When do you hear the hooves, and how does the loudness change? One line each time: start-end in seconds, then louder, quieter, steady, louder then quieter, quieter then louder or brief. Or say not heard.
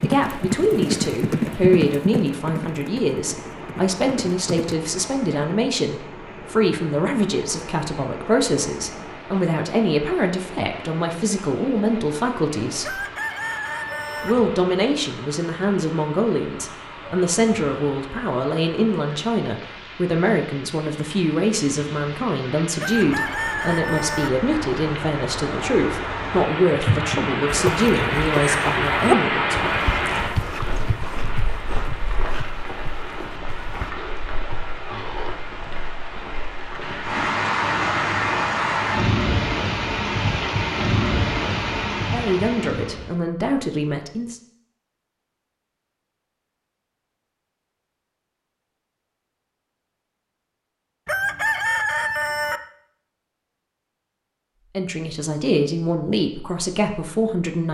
0.0-4.8 quieter
27.4-33.9 louder then quieter.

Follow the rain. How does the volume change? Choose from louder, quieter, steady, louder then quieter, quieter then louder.
louder.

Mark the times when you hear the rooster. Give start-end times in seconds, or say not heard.
12.8-14.3, 22.8-24.3, 51.0-52.6.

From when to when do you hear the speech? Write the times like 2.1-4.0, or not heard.
0.0-13.0, 14.2-29.8, 42.0-44.4, 54.8-57.6.